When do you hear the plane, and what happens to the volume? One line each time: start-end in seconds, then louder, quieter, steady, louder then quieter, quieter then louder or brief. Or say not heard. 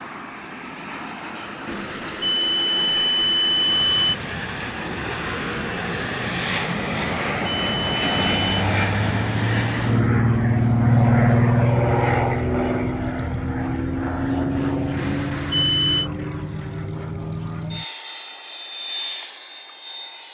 0.0-20.3 louder then quieter.